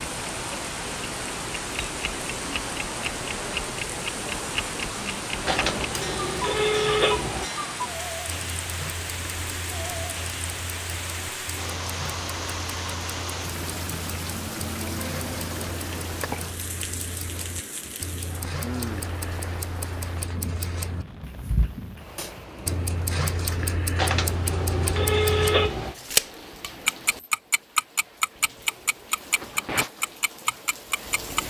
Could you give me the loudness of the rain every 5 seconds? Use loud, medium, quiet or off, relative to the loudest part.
loud, loud, loud, loud, medium, medium, medium.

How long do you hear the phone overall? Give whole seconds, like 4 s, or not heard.
4 s.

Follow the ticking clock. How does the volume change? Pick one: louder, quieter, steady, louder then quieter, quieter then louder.
quieter then louder.